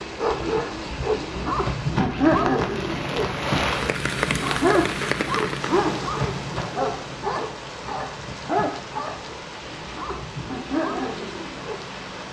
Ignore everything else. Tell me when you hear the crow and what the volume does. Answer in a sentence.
You can't hear the crow here.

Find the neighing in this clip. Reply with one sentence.
The neighing can't be heard in this clip.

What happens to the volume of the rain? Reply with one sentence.
The loudness of the rain goes up, then down.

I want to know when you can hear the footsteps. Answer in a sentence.
The footsteps can be heard from 1.2 to 8.8 s.